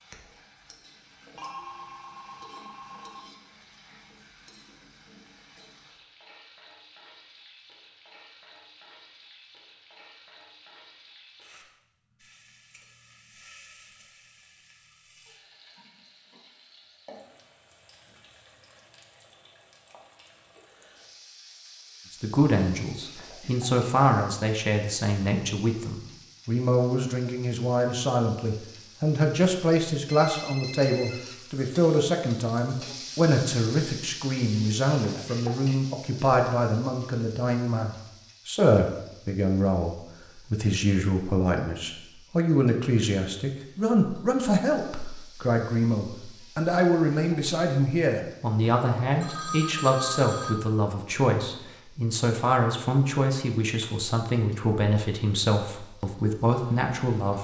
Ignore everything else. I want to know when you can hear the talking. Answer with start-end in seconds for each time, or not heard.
22.1-57.4.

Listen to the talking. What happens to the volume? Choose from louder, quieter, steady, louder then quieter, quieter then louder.
steady.